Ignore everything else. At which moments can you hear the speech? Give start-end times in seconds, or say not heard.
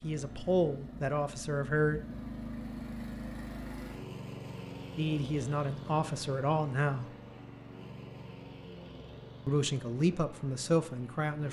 0.0-2.0, 5.0-7.1, 9.4-11.4.